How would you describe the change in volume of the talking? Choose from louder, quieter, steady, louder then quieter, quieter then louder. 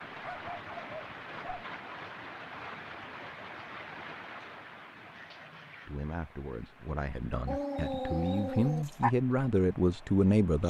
louder.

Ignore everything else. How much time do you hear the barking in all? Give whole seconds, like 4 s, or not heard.
3 s.